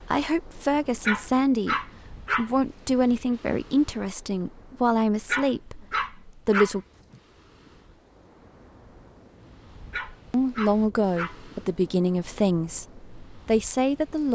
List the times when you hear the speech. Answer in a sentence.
The speech can be heard from 0.0 to 6.8 s and from 10.1 to 14.3 s.